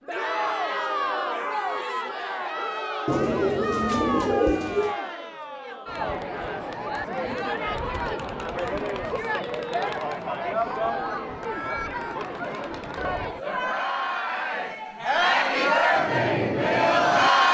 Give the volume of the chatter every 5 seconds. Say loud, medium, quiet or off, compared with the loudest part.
medium, medium, medium, loud.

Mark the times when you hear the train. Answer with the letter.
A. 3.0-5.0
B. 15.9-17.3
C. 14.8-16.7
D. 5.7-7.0
B.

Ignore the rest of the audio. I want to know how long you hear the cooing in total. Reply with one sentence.
The cooing can be heard for 2 seconds in total.